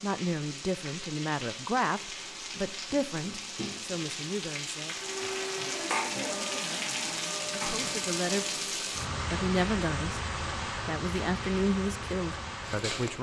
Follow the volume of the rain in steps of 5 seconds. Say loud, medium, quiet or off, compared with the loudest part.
medium, loud, loud.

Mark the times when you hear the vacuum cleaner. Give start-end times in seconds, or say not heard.
5.0-8.7.